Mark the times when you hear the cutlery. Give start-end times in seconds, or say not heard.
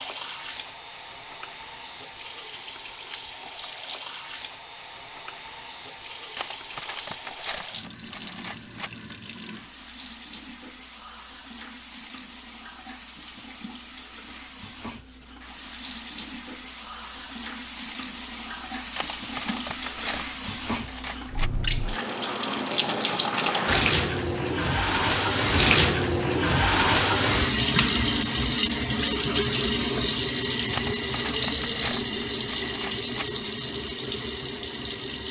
6.3-8.9, 18.9-21.7, 30.7-33.2.